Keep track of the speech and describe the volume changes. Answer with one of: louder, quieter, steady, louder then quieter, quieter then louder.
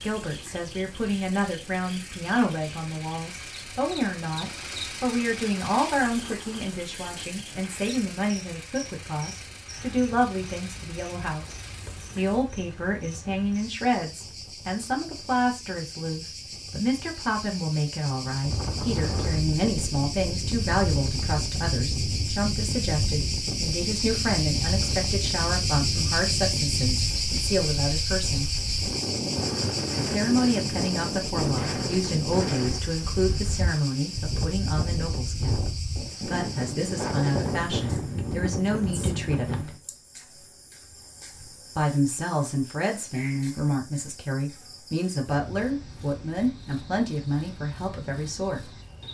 steady.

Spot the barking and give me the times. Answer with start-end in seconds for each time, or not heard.
not heard.